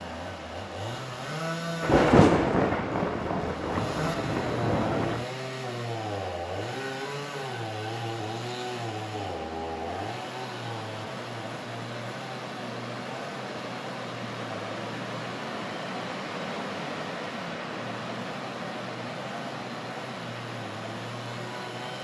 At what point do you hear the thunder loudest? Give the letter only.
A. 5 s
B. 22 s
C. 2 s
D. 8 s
C.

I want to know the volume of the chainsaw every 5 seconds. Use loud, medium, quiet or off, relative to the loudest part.
loud, loud, medium, medium, medium.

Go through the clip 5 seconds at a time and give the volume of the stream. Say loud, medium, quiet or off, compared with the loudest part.
medium, medium, loud, loud, loud.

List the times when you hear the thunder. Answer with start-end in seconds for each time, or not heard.
1.8-5.2.